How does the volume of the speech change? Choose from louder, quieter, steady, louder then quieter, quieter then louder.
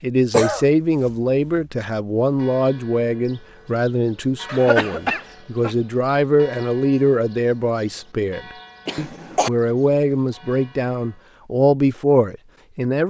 steady.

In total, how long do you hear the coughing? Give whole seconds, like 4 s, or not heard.
3 s.